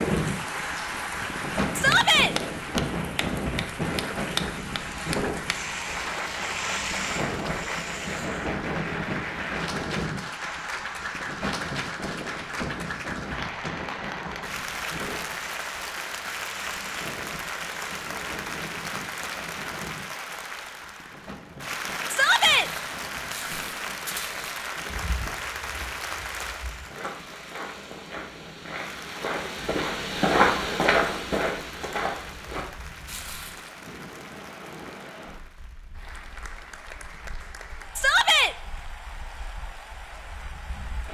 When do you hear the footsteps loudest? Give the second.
30 s.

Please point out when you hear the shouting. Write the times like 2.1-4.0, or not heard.
1.8-2.4, 22.1-22.7, 38.0-38.5.